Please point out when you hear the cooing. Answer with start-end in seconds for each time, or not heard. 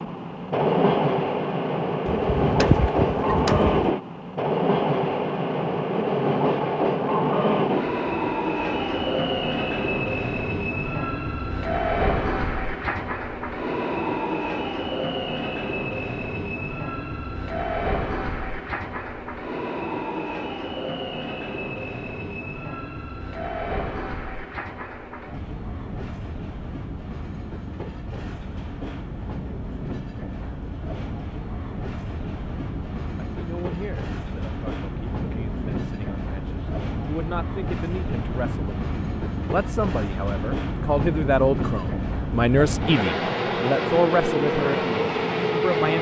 2.0-4.0.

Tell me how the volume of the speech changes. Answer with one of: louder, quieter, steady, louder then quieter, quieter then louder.
louder.